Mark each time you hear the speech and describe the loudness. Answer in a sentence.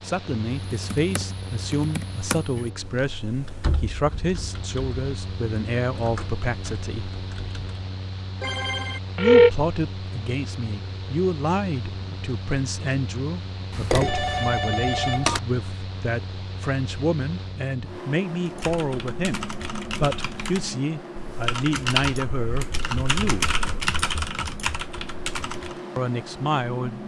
The speech can be heard from 0.0 to 7.1 s, at a steady volume; from 9.2 to 23.6 s, at a steady volume; and briefly from 25.9 to 27.0 s.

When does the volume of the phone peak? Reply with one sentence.
The volume of the phone peaks at 9 seconds.